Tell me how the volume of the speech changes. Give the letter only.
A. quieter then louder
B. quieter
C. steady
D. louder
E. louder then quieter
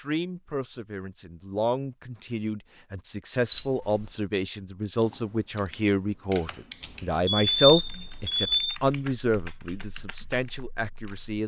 E.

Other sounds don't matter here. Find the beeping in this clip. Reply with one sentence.
The beeping can be heard from 3.5 to 4.1 s and from 6.8 to 8.8 s.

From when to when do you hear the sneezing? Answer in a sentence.
The sneezing can't be heard in this clip.